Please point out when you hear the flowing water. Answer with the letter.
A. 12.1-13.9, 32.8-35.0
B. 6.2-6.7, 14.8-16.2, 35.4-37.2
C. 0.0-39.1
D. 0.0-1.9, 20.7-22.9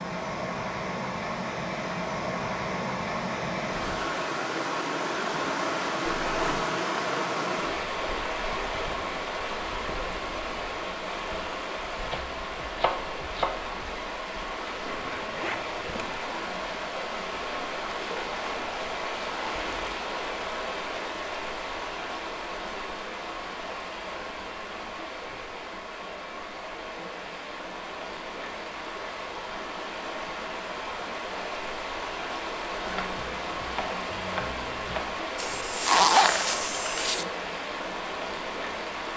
C.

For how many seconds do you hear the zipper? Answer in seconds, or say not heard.
4 s.